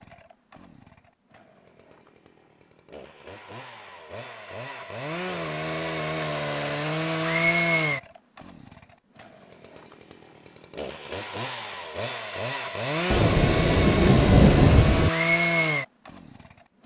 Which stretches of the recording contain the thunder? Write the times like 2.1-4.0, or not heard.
13.1-15.1.